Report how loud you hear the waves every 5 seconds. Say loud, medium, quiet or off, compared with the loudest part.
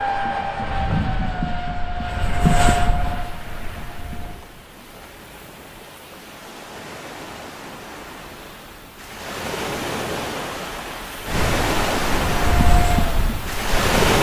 quiet, medium, loud.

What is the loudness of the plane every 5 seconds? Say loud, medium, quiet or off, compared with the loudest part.
loud, off, loud.